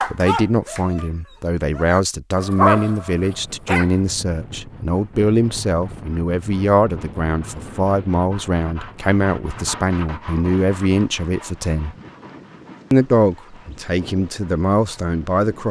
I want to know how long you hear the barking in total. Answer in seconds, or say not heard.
4 s.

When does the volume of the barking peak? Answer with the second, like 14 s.
3 s.